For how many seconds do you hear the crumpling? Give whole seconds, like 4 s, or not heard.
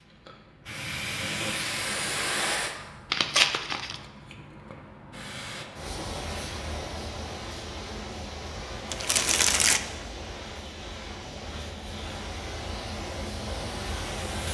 2 s.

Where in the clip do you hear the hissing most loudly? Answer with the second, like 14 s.
2 s.